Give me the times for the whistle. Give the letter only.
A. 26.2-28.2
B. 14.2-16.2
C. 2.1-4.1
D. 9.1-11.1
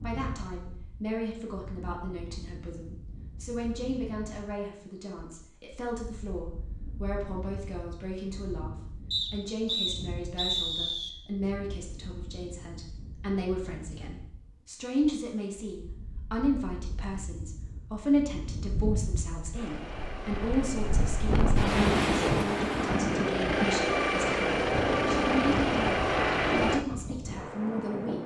D.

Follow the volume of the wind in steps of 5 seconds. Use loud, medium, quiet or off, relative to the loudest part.
quiet, quiet, quiet, quiet, loud, medium.